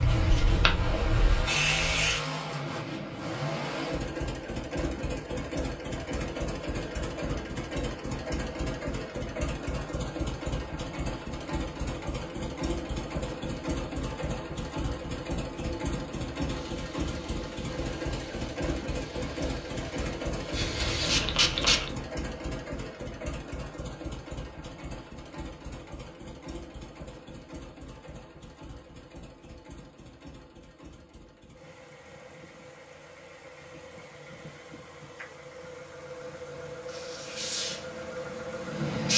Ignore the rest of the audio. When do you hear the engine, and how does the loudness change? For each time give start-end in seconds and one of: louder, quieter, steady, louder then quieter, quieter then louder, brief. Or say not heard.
0.0-39.1 quieter.